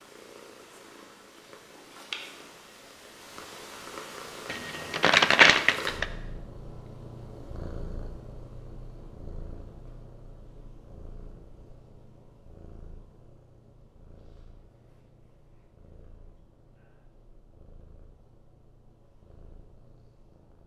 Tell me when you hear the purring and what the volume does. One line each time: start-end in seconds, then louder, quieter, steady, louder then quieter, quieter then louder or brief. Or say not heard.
0.0-20.6 quieter.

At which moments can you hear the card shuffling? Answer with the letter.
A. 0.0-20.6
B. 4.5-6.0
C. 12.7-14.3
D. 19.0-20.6
B.